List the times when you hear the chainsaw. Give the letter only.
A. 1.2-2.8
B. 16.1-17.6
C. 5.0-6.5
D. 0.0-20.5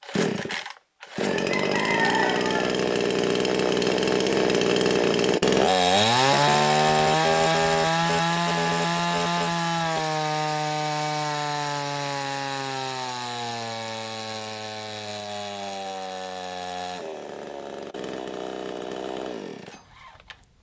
D.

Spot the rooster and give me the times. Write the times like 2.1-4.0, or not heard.
1.2-2.8.